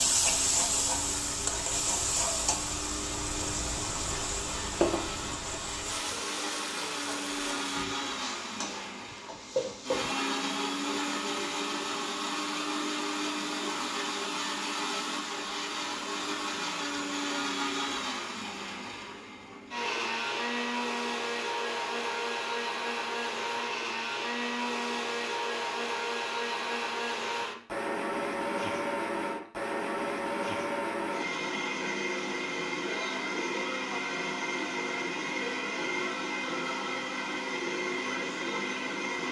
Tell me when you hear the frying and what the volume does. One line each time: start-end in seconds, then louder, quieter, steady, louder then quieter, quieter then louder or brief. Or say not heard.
0.0-10.1 quieter.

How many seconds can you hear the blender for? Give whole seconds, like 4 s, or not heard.
39 s.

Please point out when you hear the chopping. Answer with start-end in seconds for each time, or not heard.
not heard.